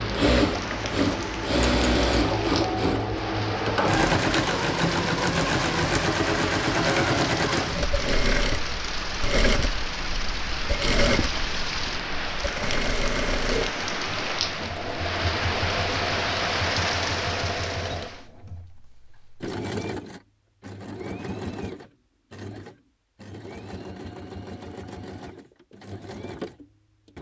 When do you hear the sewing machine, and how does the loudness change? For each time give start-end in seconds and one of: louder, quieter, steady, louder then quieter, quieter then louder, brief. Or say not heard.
0.0-27.1 quieter.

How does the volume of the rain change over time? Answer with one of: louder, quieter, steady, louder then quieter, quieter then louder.
louder.